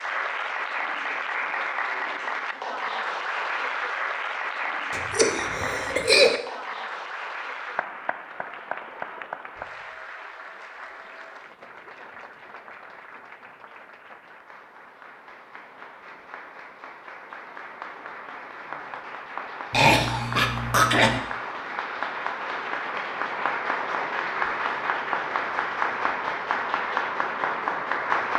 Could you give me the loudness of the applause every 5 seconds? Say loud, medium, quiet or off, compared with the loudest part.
loud, medium, quiet, quiet, loud, loud.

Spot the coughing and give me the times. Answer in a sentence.
The coughing can be heard from 4.9 to 6.4 s and from 19.7 to 21.2 s.